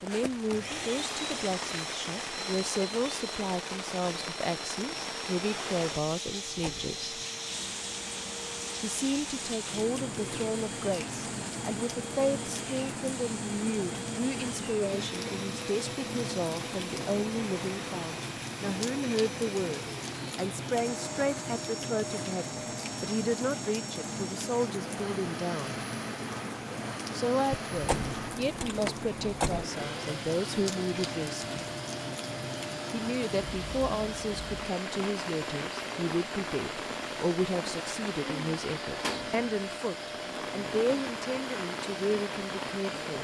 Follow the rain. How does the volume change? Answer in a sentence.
The volume of the rain stays about the same.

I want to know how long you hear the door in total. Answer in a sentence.
You can hear the door for 3 seconds altogether.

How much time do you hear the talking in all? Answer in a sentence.
You can hear the talking for 39 seconds altogether.